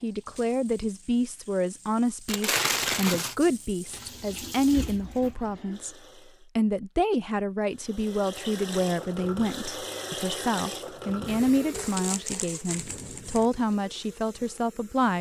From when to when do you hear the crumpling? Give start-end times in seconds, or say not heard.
2.2-3.4, 11.7-13.4.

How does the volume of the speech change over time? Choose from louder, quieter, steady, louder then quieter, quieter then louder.
steady.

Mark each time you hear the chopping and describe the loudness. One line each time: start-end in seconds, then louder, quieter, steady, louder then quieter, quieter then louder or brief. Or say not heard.
not heard.